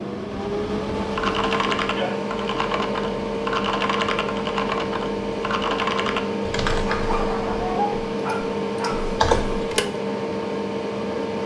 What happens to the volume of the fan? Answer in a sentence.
The volume of the fan stays about the same.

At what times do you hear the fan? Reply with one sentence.
The fan can be heard from 0.0 to 11.4 s.